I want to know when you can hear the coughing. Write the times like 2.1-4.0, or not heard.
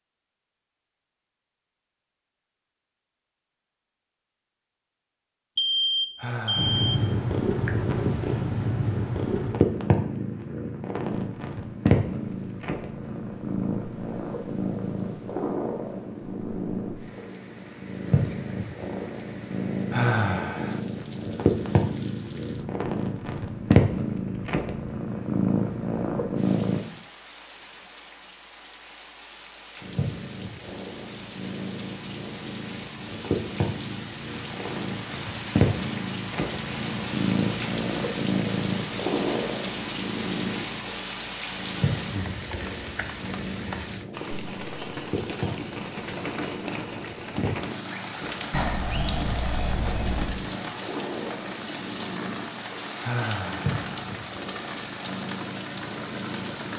not heard.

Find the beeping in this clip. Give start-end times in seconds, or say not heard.
5.5-6.8, 48.5-50.4.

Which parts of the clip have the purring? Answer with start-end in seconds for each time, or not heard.
6.5-26.8, 29.8-56.7.